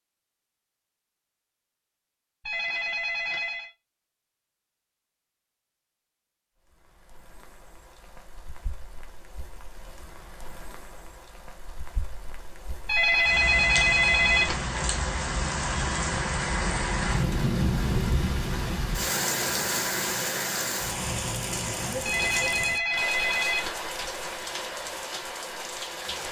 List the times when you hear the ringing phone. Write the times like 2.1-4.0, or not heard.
2.4-3.7, 12.8-14.6, 22.0-23.8.